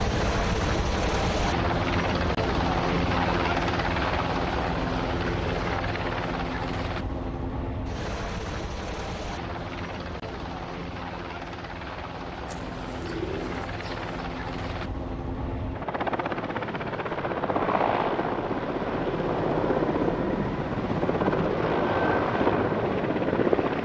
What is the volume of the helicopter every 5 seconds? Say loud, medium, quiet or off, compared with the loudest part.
loud, medium, medium, loud, loud.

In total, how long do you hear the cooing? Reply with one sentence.
You can hear the cooing for 2 seconds altogether.